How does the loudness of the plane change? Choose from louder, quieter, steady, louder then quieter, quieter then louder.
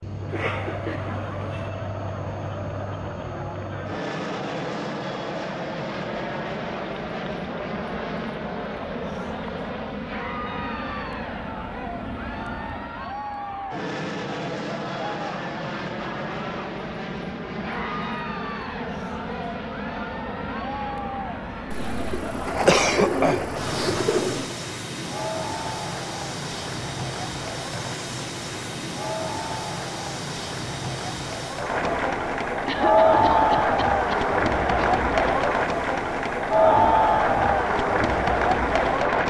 quieter.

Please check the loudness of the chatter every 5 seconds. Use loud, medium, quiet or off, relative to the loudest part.
quiet, quiet, quiet, quiet, quiet, quiet, loud, loud.